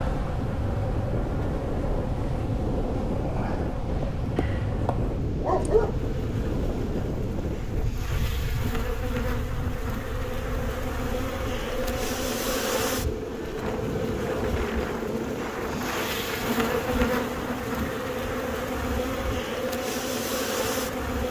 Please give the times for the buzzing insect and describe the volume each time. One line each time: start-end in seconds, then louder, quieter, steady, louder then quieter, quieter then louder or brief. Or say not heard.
0.0-21.2 louder.